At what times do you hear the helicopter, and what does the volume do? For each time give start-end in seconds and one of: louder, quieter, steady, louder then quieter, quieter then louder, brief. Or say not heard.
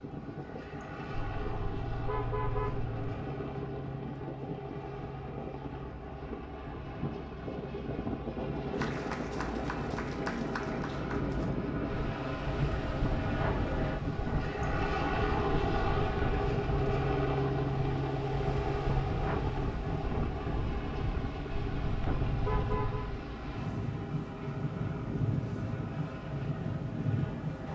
0.0-27.7 louder then quieter.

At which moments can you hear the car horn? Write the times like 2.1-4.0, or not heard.
1.1-3.1, 15.5-16.1, 21.6-23.1.